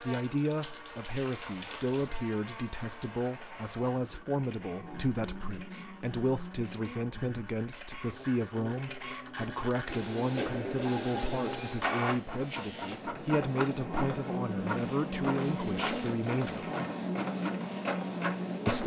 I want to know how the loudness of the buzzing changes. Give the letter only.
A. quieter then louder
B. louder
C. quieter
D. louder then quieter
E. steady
B.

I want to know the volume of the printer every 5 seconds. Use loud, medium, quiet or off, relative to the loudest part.
quiet, medium, loud, loud.